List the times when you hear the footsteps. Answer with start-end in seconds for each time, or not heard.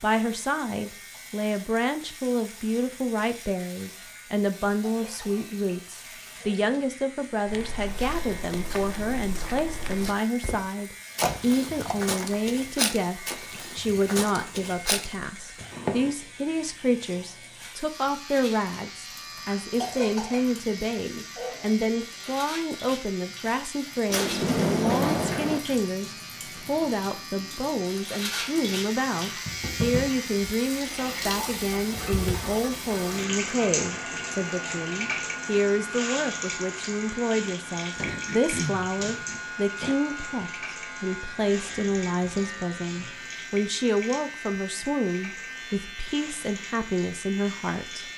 7.5-16.1.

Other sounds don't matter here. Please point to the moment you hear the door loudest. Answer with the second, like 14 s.
25 s.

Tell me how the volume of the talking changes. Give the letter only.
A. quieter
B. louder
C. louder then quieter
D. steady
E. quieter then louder
D.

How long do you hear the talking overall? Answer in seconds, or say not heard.
48 s.